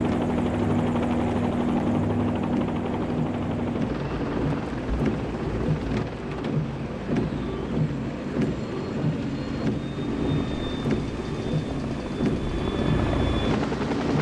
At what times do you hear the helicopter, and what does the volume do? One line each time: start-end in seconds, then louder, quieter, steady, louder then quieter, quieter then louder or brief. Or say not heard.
0.0-14.1 quieter then louder.